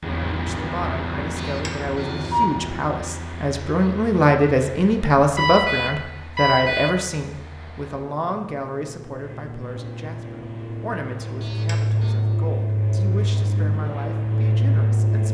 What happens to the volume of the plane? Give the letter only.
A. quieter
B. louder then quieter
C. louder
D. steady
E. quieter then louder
E.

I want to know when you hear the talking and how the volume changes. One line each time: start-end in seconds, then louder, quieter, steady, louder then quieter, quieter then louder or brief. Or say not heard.
0.2-15.2 louder then quieter.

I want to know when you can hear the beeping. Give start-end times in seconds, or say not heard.
1.4-2.5, 5.3-7.0, 11.4-12.2.